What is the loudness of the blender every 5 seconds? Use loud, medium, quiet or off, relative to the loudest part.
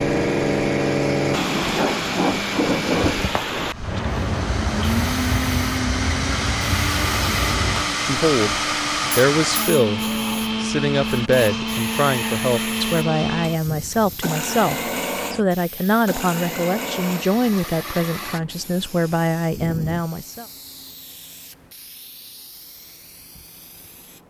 medium, loud, loud, medium, off.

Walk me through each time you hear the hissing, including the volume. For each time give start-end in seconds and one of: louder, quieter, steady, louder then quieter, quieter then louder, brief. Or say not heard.
0.0-24.2 quieter.